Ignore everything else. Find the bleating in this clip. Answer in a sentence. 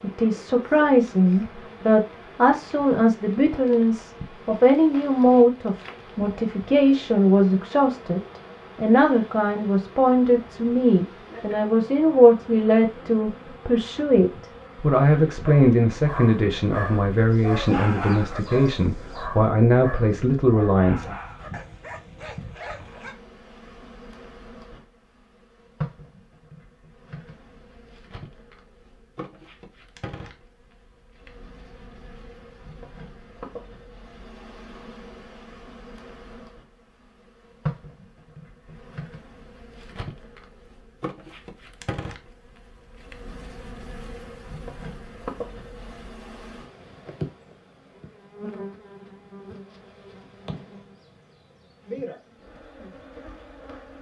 You can't hear the bleating here.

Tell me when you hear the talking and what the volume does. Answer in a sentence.
The talking can be heard from 0.0 to 21.1 s, at a steady volume.